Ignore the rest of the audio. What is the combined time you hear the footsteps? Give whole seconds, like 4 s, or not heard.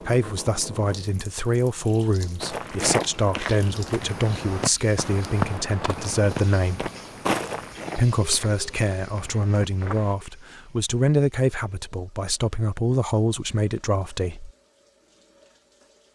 8 s.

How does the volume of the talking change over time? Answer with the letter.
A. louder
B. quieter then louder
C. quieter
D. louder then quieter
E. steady
E.